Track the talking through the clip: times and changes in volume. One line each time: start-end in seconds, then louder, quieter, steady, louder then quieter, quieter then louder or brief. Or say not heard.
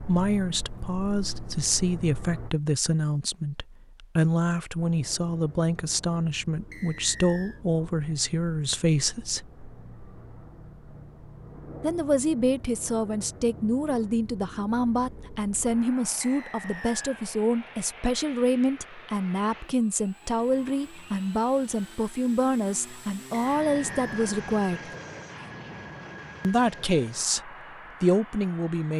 0.1-9.4 steady
11.8-24.9 steady
26.4-28.9 brief.